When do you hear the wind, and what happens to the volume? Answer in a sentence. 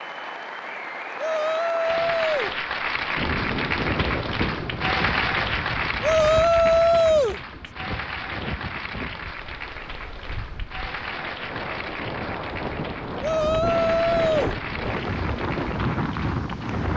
The wind can be heard from 3.1 to 16.9 s, getting quieter then louder.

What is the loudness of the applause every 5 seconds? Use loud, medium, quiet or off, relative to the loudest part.
loud, loud, medium, medium.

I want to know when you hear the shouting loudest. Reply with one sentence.
The volume of the shouting peaks at 7 seconds.